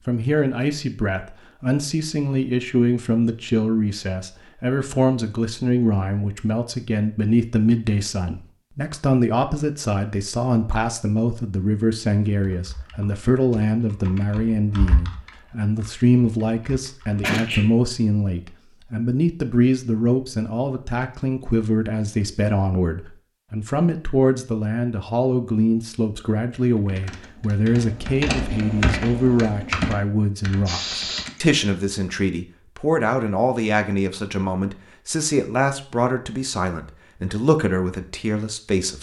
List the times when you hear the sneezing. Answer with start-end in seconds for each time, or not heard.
17.2-17.6, 30.6-31.4.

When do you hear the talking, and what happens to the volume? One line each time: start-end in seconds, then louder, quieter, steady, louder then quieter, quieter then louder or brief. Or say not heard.
0.1-38.9 steady.